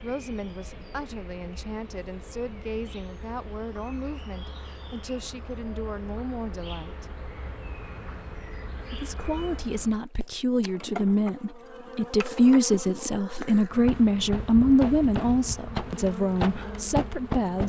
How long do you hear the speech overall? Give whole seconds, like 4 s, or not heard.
16 s.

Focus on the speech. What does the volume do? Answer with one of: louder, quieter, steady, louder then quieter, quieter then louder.
louder.